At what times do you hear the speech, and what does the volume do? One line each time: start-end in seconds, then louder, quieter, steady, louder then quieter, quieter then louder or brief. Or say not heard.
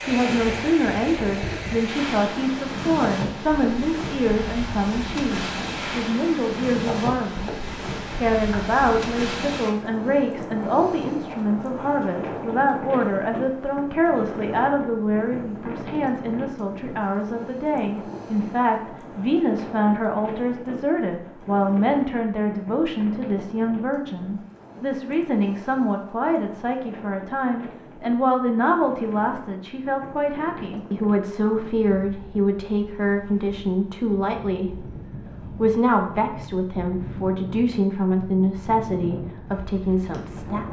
0.0-40.6 steady.